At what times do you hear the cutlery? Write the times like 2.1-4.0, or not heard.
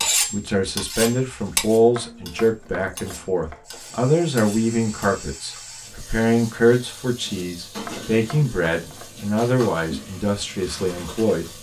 0.0-5.1.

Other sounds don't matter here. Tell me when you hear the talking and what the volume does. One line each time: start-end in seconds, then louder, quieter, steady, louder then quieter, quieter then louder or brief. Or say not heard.
0.3-11.5 steady.